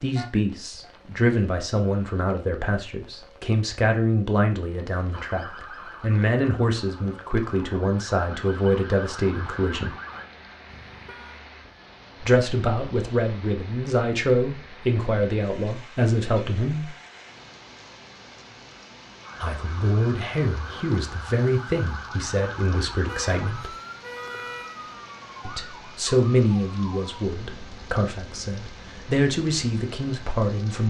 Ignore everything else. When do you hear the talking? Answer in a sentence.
The talking can be heard from 0.0 to 9.9 s, from 12.2 to 16.9 s, from 19.4 to 23.8 s and from 25.4 to 30.8 s.